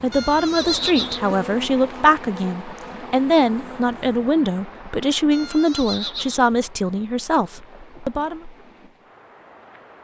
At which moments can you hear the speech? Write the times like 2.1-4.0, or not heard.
0.0-8.4.